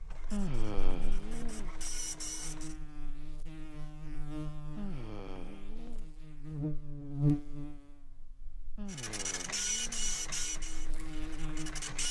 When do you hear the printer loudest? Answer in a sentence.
The volume of the printer peaks at 10 seconds.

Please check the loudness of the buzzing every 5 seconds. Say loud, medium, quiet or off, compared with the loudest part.
medium, loud, medium.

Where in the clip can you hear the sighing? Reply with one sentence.
The sighing can be heard from 0.3 to 1.8 s, from 4.8 to 6.0 s and from 8.8 to 10.2 s.